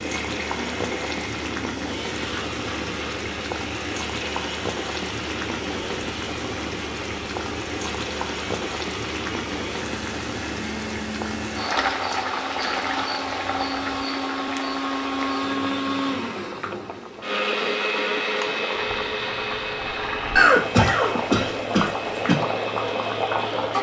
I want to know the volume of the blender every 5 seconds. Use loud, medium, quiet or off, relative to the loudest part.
medium, medium, medium, loud, medium.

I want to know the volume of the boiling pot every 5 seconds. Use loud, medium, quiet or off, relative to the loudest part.
loud, loud, loud, medium, loud.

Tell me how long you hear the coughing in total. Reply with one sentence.
The coughing can be heard for 2 seconds in total.